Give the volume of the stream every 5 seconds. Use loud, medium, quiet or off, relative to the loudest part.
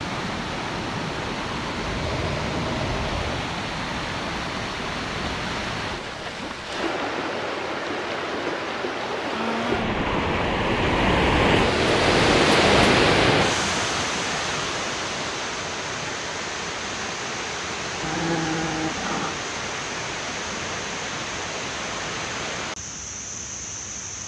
medium, medium, loud, medium, medium.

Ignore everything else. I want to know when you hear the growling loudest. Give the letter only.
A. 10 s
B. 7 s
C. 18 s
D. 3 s
C.